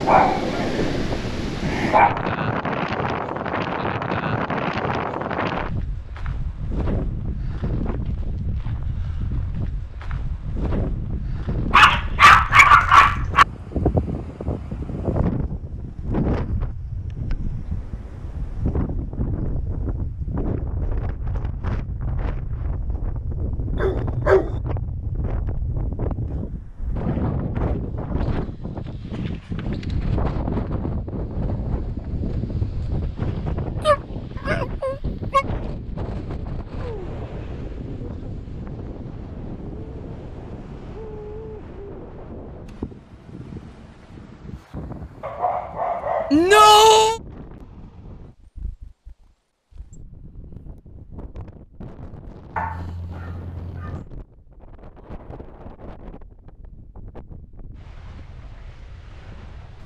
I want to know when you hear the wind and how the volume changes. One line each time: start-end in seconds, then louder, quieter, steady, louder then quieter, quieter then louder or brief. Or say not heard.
0.0-59.8 quieter.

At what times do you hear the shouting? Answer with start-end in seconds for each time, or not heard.
46.3-47.2.